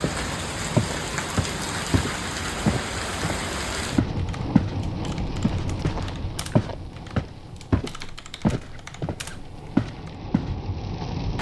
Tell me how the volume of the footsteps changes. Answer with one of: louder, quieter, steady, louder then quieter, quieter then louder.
steady.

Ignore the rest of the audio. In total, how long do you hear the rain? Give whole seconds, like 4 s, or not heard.
11 s.